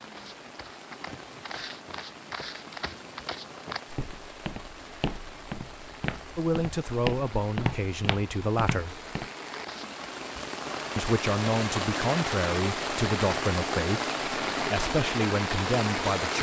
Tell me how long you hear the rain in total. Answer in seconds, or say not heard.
16 s.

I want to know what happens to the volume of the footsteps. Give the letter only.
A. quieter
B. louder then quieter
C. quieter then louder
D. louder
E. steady
D.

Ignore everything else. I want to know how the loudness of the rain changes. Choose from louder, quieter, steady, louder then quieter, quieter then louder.
louder.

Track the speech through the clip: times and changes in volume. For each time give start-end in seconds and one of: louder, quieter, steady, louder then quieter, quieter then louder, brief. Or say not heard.
6.3-9.0 brief
10.9-16.3 steady.